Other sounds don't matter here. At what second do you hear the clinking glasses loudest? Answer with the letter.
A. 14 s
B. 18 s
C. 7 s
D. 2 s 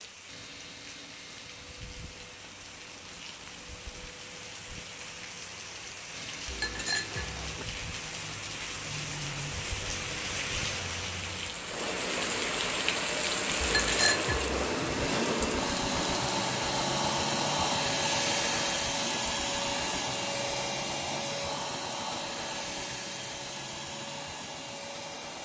A.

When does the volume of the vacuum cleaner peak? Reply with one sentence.
The loudest moment of the vacuum cleaner is at 18 seconds.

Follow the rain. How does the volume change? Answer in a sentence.
The volume of the rain goes up, then down.